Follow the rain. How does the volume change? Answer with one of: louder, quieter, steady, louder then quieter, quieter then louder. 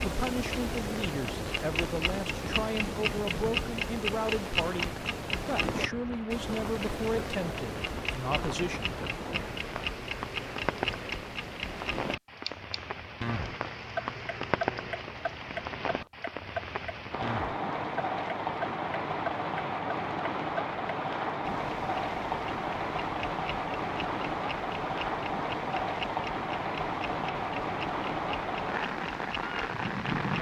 louder.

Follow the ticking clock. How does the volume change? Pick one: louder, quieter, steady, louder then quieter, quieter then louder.
quieter.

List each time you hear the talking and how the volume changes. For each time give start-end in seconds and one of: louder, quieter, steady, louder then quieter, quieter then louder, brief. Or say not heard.
0.0-8.8 steady.